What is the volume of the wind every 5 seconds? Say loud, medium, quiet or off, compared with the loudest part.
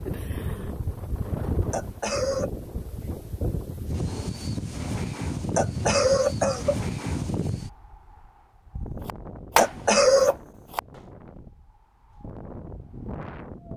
loud, loud, medium.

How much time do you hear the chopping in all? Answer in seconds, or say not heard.
2 s.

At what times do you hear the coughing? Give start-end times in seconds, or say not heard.
1.7-2.5, 5.5-6.8, 9.6-10.3.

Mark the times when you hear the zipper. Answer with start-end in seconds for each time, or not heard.
not heard.